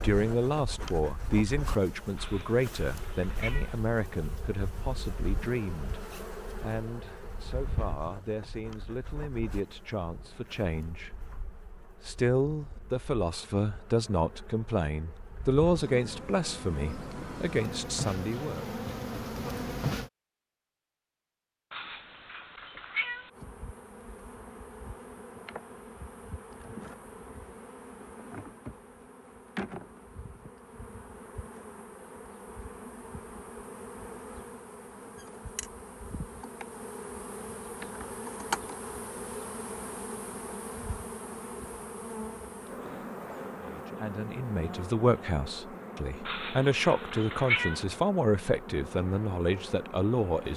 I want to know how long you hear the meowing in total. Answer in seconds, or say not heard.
5 s.